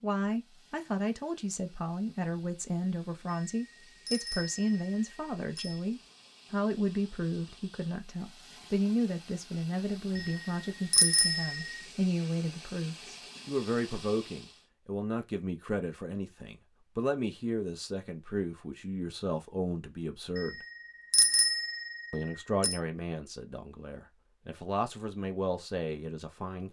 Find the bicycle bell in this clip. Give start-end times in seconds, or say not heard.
3.3-5.8, 10.2-11.8, 20.4-22.8.